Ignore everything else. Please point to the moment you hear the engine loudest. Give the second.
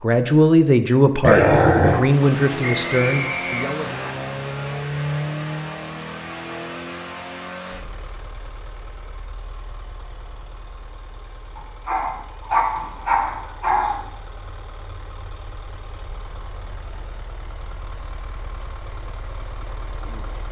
5 s.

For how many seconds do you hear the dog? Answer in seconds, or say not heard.
3 s.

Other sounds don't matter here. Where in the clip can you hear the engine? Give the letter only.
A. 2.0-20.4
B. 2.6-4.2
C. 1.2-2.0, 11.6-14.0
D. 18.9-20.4
A.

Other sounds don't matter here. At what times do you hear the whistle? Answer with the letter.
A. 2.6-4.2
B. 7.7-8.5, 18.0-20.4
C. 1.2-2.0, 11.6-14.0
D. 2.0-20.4
A.